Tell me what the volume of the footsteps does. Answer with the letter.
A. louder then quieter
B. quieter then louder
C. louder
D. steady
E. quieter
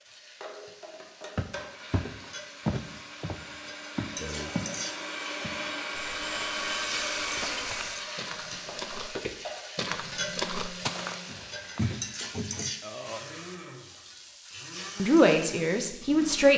B.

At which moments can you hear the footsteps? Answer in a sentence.
The footsteps can be heard from 1.4 to 12.7 s.